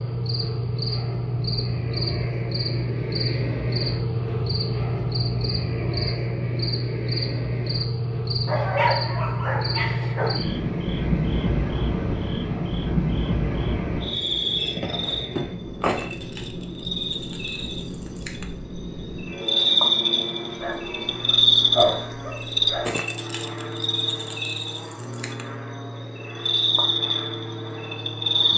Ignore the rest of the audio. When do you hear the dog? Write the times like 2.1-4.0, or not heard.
8.4-10.4, 20.6-22.9.